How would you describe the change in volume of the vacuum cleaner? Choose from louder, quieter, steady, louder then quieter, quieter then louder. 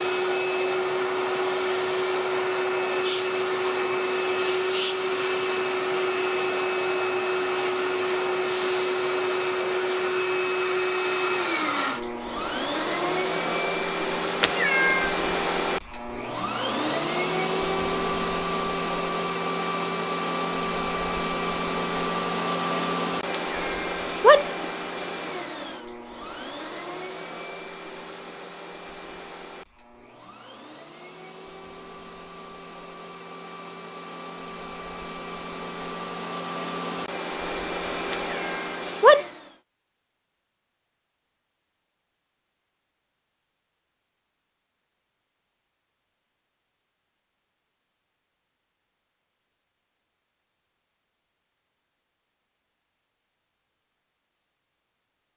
quieter.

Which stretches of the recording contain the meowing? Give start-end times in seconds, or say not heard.
14.4-15.2, 23.6-24.5, 38.1-39.2.